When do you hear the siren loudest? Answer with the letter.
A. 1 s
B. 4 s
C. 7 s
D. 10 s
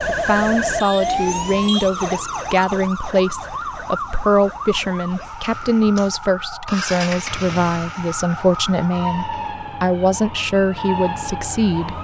A.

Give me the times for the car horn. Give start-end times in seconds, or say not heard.
not heard.